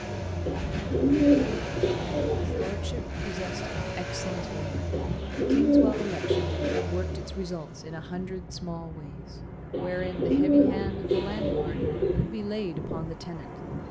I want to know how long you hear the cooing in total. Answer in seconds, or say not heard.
7 s.